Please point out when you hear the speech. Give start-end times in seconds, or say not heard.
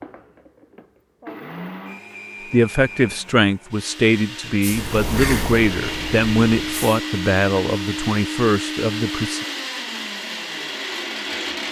2.5-9.4.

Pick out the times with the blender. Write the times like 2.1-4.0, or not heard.
0.0-11.6.